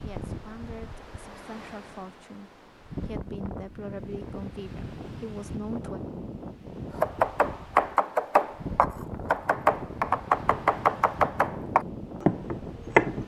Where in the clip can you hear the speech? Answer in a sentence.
The speech can be heard from 0.0 to 6.0 s.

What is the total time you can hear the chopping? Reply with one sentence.
You can hear the chopping for 6 seconds altogether.